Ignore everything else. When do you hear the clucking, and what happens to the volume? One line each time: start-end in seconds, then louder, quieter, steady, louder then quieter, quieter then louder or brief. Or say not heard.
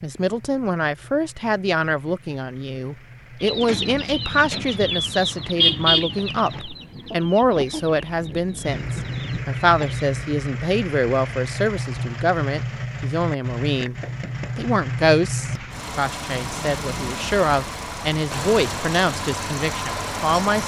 3.5-10.1 louder then quieter.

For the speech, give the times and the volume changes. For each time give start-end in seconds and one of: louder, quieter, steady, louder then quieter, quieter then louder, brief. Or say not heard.
0.0-20.6 steady.